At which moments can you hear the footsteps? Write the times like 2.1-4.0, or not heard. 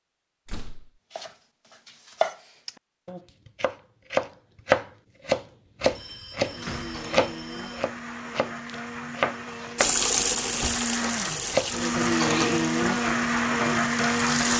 not heard.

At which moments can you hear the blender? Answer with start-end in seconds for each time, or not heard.
6.5-14.5.